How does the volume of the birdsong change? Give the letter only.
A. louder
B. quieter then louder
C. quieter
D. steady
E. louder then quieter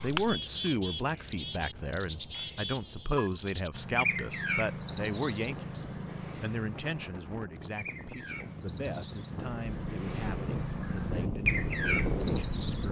B.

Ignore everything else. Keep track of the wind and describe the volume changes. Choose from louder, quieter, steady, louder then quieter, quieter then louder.
louder.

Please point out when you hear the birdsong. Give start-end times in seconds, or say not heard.
0.0-12.8.